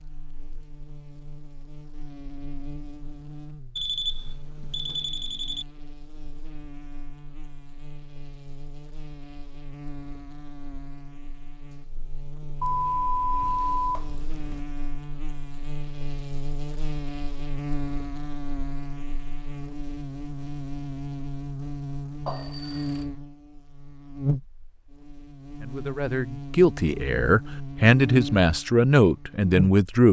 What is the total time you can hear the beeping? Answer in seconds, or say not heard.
5 s.